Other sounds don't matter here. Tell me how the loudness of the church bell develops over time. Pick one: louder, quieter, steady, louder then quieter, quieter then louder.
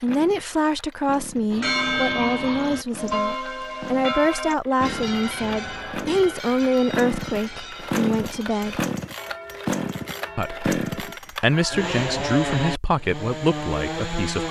quieter.